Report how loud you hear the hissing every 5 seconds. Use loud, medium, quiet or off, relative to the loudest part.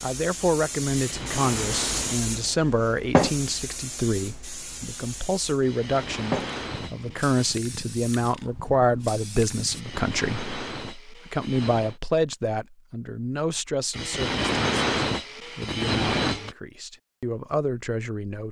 loud, medium, off, off.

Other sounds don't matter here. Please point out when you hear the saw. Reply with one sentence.
The saw can be heard from 0.9 to 2.3 s, from 5.6 to 7.6 s, from 9.7 to 12.0 s and from 13.9 to 16.6 s.